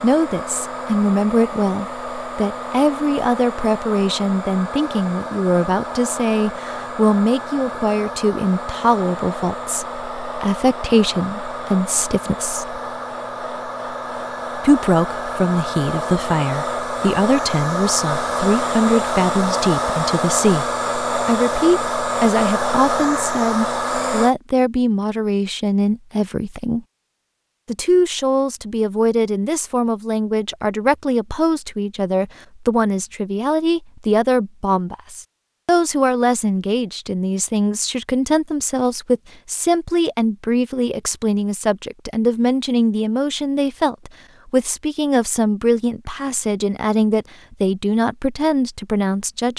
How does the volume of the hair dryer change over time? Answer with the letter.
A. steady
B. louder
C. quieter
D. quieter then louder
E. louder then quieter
B.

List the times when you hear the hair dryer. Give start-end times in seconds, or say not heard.
0.0-24.4.